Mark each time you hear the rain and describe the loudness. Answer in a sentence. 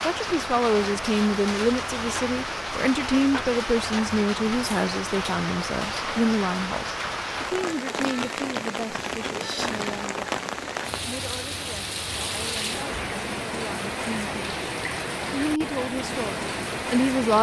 The rain can be heard from 0.0 to 17.3 s, at a steady volume.